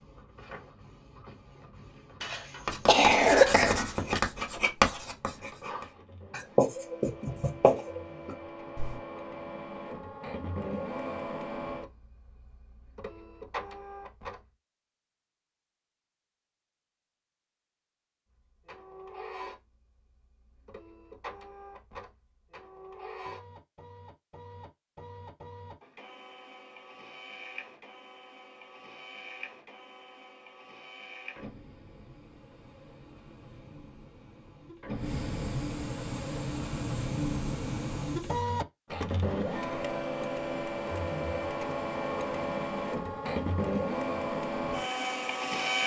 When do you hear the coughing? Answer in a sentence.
The coughing can be heard from 2.2 to 4.2 s.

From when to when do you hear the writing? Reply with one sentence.
You can hear the writing from 2.6 to 5.5 s and from 6.3 to 9.0 s.